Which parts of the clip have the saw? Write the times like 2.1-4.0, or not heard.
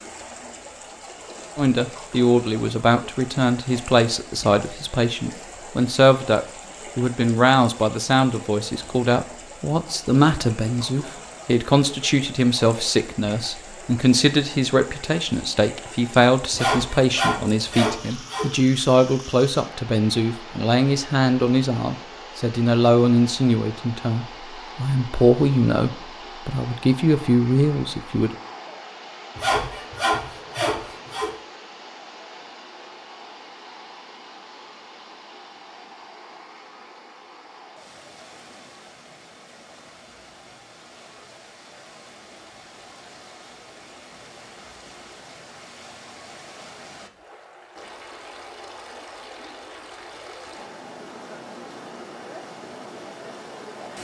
16.5-18.5, 29.4-31.3.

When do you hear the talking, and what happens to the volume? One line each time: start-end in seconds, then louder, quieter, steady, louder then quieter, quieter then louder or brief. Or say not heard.
1.6-28.4 steady.